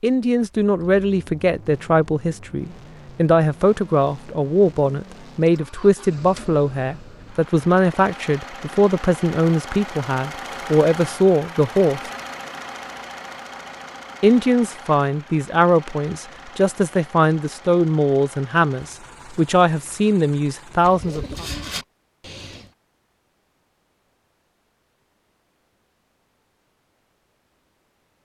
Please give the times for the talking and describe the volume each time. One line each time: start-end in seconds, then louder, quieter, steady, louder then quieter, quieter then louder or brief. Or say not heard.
0.0-12.0 steady
14.2-21.4 steady.